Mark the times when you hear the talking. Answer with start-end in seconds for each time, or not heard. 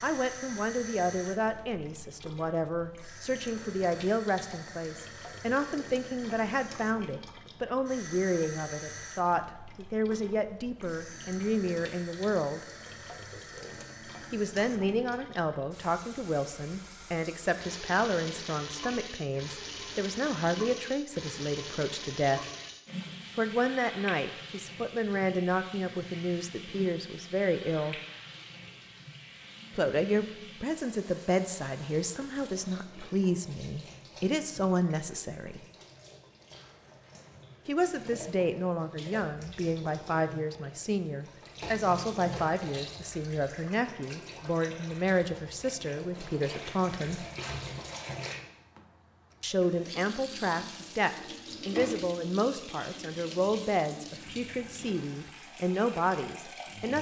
0.0-12.7, 14.3-22.4, 23.4-27.9, 29.8-35.6, 37.6-47.2, 49.4-56.9.